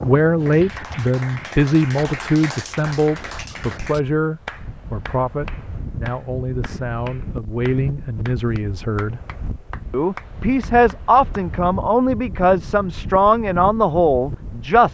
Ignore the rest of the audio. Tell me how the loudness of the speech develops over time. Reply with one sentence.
The volume of the speech goes down, then up.